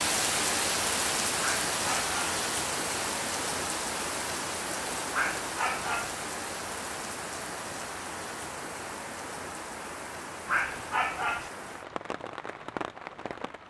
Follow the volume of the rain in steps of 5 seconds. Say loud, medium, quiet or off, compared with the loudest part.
loud, medium, medium.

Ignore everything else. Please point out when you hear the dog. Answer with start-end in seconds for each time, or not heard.
1.4-2.4, 5.1-6.2, 10.4-11.5.